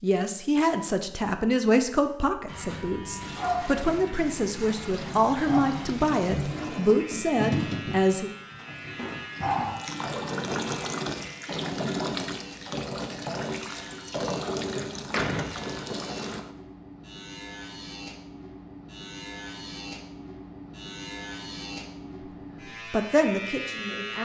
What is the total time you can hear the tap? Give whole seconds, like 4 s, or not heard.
13 s.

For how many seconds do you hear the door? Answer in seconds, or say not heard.
2 s.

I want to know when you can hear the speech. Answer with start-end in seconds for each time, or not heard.
0.0-8.3, 22.9-24.2.